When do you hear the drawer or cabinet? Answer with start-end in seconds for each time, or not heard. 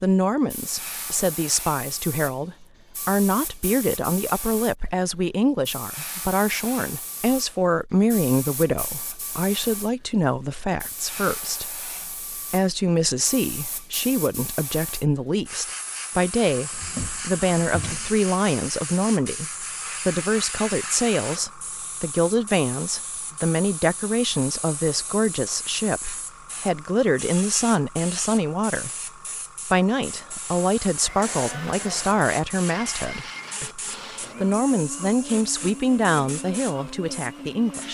16.7-18.1.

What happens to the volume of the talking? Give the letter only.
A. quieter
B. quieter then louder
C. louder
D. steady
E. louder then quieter
D.